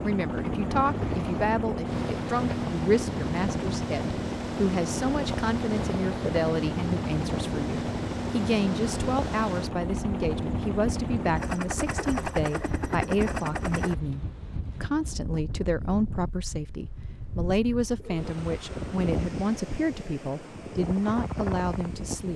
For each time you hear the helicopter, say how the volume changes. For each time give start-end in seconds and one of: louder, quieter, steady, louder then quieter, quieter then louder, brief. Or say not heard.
0.0-13.9 steady.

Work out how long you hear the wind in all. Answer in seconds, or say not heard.
22 s.